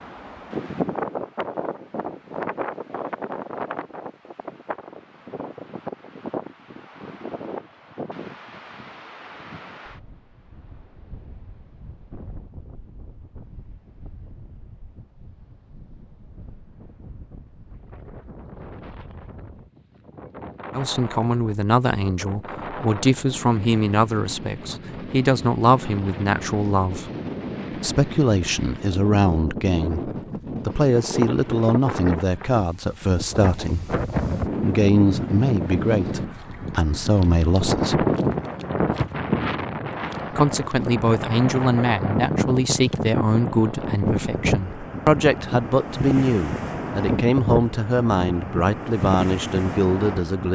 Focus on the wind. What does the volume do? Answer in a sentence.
The loudness of the wind goes down, then up.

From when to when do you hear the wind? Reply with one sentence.
You can hear the wind from 0.0 to 50.5 s.